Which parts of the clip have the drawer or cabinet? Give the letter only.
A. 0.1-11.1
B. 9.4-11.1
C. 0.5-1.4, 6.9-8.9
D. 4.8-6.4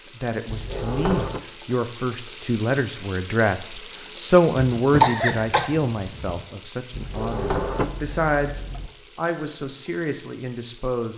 C.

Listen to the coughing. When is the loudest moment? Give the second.
5 s.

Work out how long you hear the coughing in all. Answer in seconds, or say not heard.
2 s.